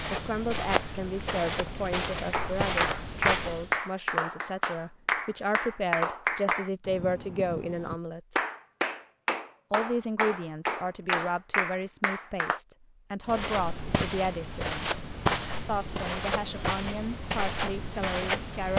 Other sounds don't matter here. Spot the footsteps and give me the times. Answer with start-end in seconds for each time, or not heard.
0.0-3.8, 13.2-18.7.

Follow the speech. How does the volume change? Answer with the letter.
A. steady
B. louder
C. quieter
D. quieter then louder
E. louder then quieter
A.